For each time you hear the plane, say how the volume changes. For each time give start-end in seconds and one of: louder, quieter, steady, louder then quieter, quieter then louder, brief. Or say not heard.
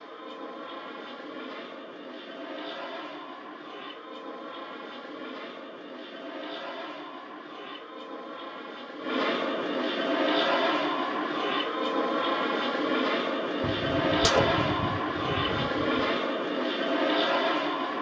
0.0-17.9 louder.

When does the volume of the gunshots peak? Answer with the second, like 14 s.
14 s.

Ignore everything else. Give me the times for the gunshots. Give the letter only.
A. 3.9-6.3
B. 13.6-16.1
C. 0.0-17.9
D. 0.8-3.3
B.